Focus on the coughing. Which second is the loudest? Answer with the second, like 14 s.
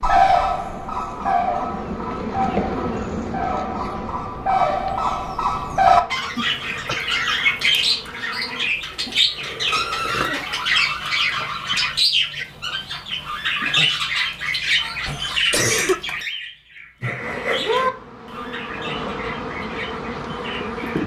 16 s.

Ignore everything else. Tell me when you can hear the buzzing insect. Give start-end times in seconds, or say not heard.
0.0-8.8, 17.1-21.0.